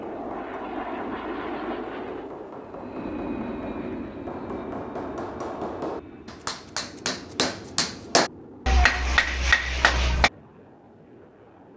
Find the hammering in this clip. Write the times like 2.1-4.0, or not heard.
0.0-10.3.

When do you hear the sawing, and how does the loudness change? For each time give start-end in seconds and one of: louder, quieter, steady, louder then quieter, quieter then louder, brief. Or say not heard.
not heard.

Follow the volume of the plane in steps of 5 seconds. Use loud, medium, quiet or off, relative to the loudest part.
loud, medium, quiet.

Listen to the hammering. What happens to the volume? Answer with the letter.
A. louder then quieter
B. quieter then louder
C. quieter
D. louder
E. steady
D.